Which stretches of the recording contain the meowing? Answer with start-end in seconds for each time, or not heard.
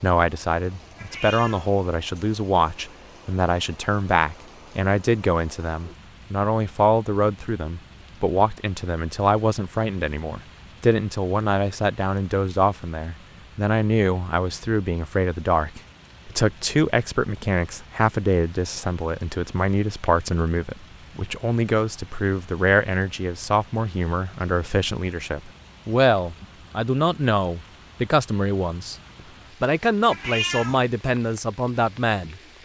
0.9-1.8, 30.1-30.8.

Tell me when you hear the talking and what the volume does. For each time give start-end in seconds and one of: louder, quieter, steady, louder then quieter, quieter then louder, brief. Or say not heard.
0.0-28.9 steady
29.6-32.4 brief.